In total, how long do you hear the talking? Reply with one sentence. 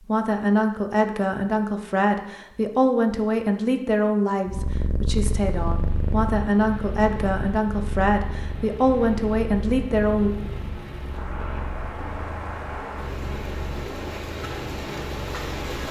The talking can be heard for 10 seconds in total.